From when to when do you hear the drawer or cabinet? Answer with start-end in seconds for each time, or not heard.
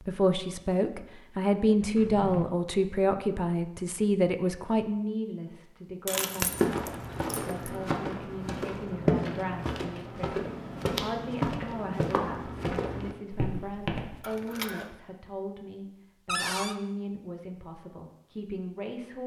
1.9-2.5, 9.2-10.1, 16.2-16.8.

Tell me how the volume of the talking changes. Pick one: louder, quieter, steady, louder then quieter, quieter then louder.
quieter.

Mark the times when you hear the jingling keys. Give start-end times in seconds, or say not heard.
6.0-7.8, 14.2-14.9.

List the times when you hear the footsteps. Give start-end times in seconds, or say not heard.
6.5-14.2.